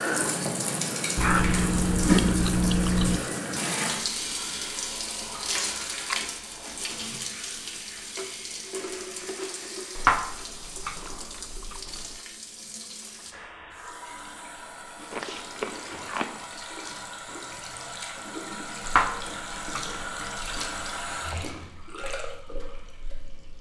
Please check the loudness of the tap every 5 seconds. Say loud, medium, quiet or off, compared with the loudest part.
loud, medium, quiet, medium, medium.